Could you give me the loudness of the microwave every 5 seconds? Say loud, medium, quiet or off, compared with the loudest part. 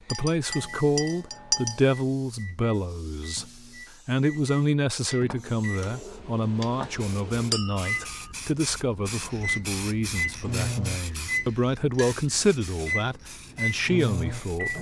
quiet, medium, loud.